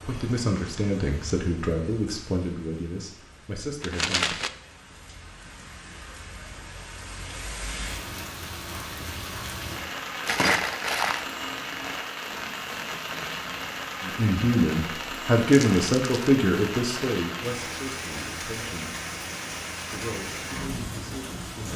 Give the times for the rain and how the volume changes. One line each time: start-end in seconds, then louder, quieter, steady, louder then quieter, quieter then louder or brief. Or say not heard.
0.0-21.7 louder.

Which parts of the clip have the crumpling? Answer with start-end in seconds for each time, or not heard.
3.8-4.5, 10.2-11.2, 15.5-16.3.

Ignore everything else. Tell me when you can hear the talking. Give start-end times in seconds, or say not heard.
0.0-4.5, 14.0-18.9, 19.9-21.7.